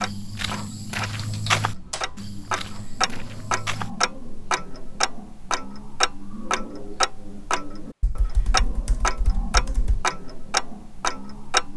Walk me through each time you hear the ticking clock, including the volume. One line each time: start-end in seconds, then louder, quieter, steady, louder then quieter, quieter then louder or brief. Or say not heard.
0.0-11.7 louder.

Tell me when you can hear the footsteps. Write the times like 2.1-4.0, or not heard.
0.0-3.9.